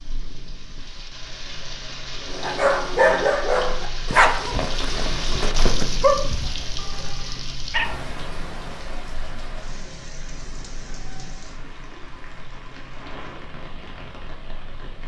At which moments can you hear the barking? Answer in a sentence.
You can hear the barking from 2.4 to 8.0 s.